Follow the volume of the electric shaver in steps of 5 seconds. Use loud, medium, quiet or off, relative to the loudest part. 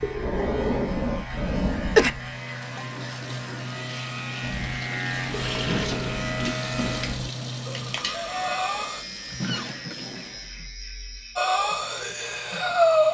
loud, loud, medium.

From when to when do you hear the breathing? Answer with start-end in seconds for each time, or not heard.
0.0-2.1, 4.4-9.1, 11.3-13.0.